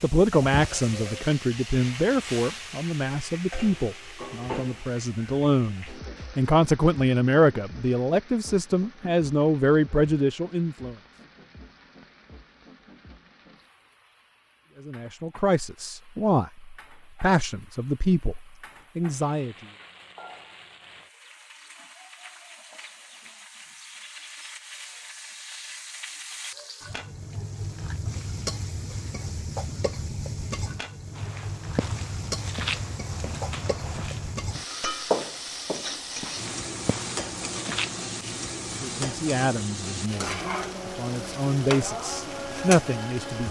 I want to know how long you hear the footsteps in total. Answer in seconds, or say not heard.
7 s.